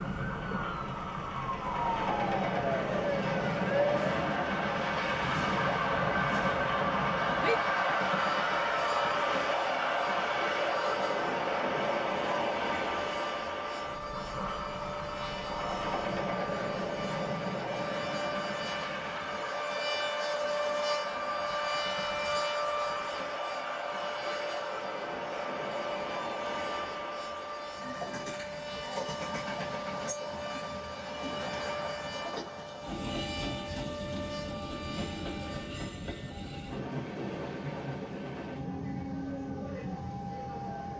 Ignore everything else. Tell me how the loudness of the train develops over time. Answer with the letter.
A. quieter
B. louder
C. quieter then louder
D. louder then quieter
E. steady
A.